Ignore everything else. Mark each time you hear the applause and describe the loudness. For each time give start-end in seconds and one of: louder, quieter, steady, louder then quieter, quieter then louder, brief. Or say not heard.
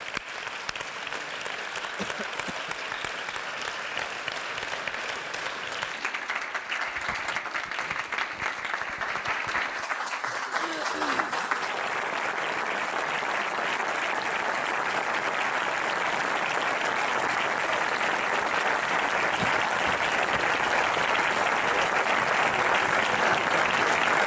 0.0-24.2 louder.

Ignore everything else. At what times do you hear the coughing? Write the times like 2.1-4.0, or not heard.
1.9-2.8, 10.6-11.4, 19.4-20.5.